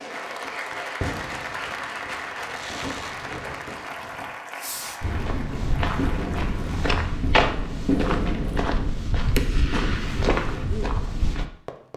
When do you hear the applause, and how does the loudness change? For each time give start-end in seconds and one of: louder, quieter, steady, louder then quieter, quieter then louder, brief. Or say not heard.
0.0-7.0 quieter.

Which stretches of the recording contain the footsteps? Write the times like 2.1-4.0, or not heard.
5.0-11.4.